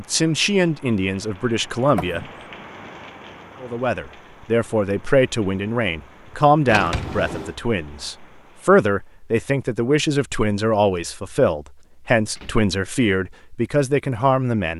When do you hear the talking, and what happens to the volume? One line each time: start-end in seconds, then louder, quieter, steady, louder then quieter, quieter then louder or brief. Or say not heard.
0.0-2.2 brief
3.6-14.7 steady.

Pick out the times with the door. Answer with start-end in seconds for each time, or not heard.
1.9-2.4, 6.7-7.5, 11.8-12.7.